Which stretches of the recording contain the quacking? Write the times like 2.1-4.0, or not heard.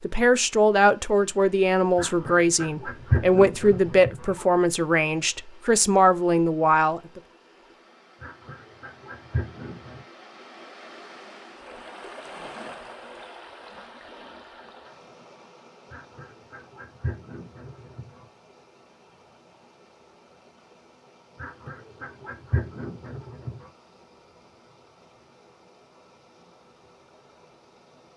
1.9-4.5, 8.2-10.0, 15.9-18.2, 21.4-23.7.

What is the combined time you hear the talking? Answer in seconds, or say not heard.
7 s.